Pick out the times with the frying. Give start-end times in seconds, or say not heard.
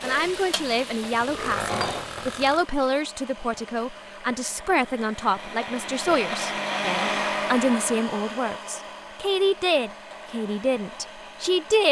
0.0-2.5.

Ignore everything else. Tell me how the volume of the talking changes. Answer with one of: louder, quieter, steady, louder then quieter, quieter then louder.
steady.